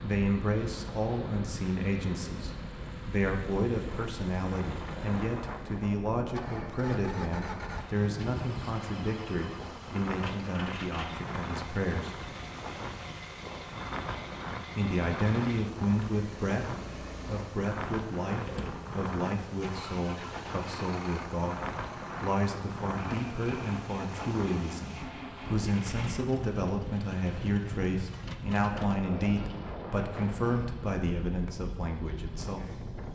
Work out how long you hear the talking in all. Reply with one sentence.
The talking can be heard for 30 seconds in total.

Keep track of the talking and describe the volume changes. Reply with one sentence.
The loudness of the talking stays about the same.